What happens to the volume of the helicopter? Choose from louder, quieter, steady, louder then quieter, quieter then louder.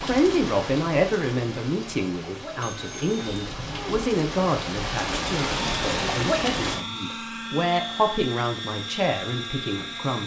steady.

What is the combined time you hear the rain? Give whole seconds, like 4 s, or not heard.
7 s.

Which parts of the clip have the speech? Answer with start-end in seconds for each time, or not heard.
0.0-10.2.